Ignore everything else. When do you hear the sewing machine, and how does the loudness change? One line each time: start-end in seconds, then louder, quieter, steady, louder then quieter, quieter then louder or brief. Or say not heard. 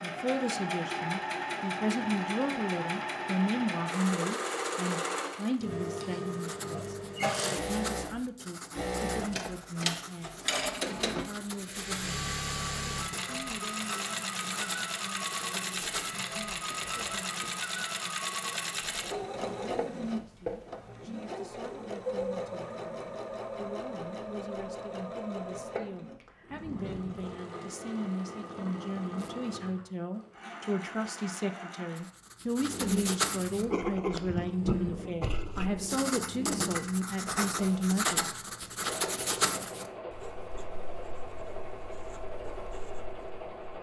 0.0-43.7 quieter.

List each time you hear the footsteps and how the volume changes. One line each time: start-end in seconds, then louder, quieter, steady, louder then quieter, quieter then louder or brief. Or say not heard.
not heard.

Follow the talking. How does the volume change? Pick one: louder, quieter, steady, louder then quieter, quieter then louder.
quieter then louder.